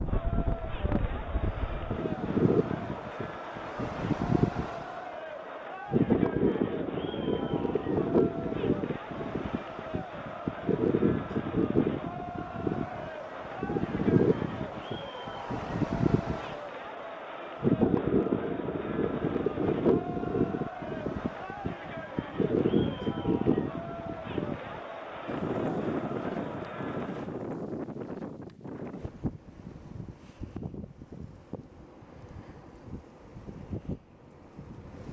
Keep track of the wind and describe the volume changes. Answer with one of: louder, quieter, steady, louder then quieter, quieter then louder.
quieter.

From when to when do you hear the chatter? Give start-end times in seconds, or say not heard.
0.0-27.5.